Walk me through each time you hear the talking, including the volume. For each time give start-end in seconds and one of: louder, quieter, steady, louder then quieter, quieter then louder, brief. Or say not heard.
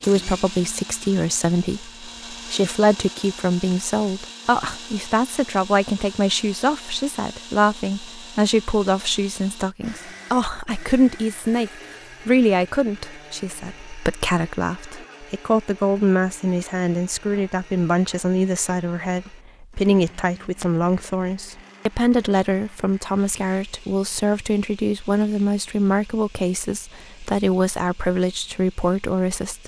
0.0-29.6 steady.